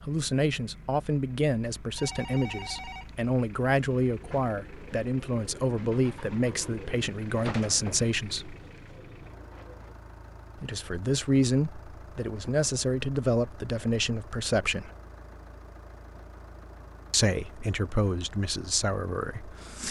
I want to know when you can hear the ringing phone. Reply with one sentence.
You can hear the ringing phone from 1.9 to 3.1 s.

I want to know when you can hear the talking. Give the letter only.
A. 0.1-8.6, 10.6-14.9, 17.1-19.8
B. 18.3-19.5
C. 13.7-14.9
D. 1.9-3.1
A.